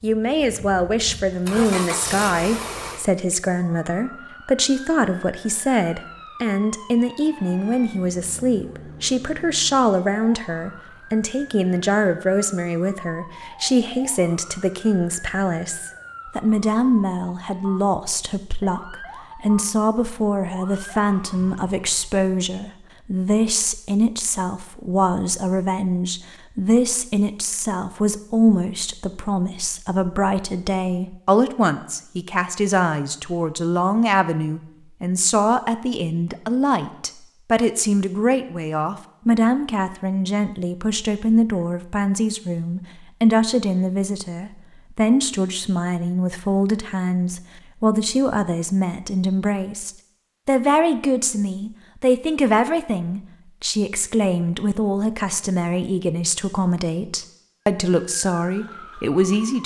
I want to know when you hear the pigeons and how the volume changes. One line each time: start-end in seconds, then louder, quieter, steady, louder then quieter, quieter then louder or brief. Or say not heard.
not heard.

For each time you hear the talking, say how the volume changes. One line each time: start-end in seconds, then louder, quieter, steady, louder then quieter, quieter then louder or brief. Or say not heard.
0.0-59.6 steady.